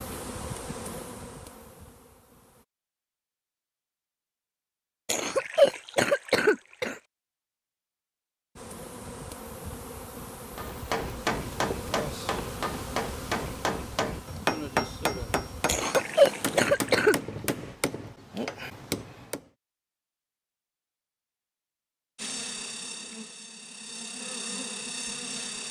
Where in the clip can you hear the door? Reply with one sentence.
You can't hear the door here.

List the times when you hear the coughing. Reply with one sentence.
The coughing can be heard from 5.0 to 7.0 s and from 15.7 to 17.1 s.